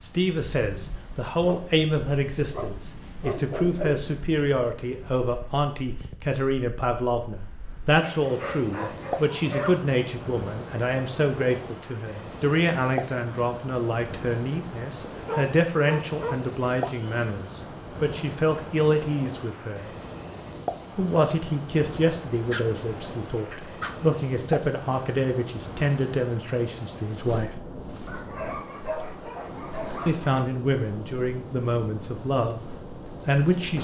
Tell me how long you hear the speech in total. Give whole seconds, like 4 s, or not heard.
30 s.